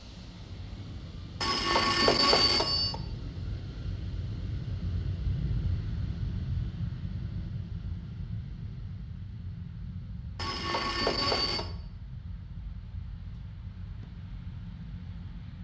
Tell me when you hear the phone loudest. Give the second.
2 s.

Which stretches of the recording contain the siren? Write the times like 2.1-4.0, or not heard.
not heard.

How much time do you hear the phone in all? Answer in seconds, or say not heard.
3 s.